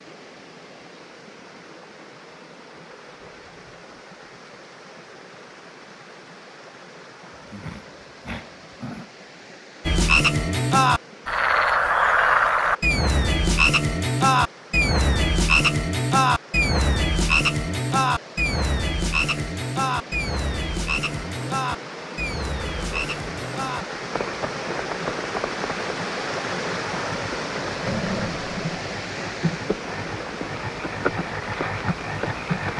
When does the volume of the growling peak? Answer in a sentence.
The loudest moment of the growling is at 28 seconds.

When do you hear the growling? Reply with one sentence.
You can hear the growling from 7.3 to 9.1 s and from 27.9 to 28.6 s.